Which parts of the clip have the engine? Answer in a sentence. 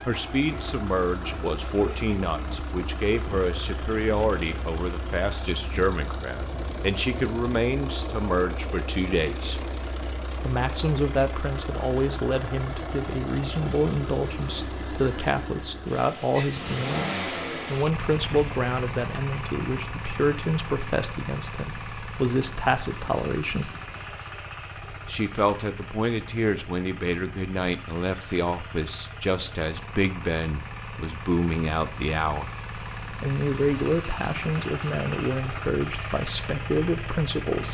You can hear the engine from 0.0 to 37.6 s.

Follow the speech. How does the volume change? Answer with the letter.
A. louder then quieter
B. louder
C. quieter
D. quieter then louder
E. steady
E.